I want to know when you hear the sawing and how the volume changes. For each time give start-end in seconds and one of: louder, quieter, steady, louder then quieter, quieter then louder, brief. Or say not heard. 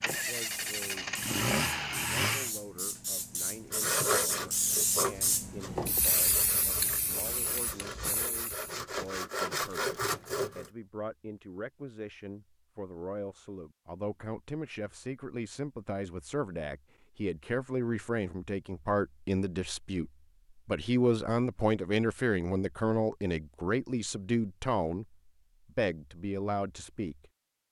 3.7-10.7 quieter then louder.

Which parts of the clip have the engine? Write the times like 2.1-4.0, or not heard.
0.0-2.5.